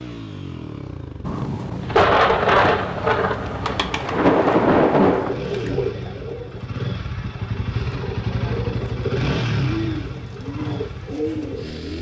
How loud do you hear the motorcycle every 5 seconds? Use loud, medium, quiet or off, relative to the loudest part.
medium, loud, medium.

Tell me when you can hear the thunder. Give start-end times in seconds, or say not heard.
1.2-5.4.